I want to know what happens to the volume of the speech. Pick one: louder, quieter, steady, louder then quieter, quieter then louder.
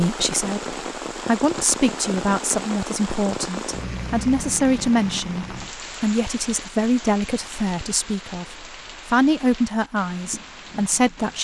steady.